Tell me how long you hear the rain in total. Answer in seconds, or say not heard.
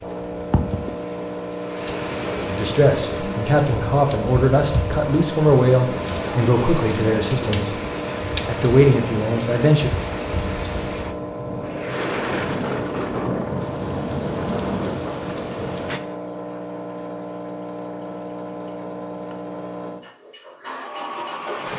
16 s.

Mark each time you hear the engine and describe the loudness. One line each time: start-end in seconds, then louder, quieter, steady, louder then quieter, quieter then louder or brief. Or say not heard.
0.0-21.7 steady.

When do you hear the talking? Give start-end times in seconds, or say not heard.
2.5-7.8, 8.4-9.9.